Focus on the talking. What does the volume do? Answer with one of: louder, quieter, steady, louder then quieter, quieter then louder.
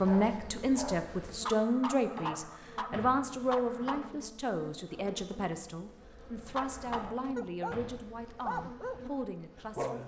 quieter.